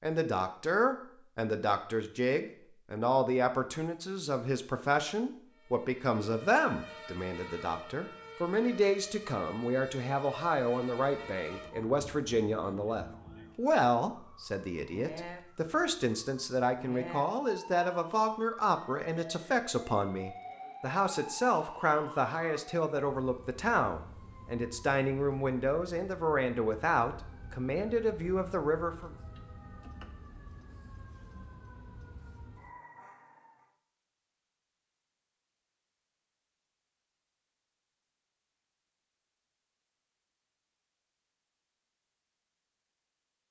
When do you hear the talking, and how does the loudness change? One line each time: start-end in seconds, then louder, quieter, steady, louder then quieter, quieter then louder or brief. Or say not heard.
0.0-29.1 steady.